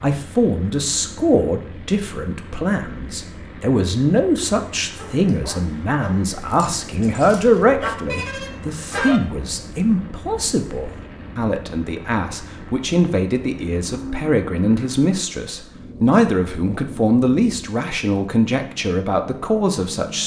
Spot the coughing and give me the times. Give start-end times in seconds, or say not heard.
not heard.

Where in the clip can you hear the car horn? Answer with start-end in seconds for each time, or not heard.
8.1-9.2.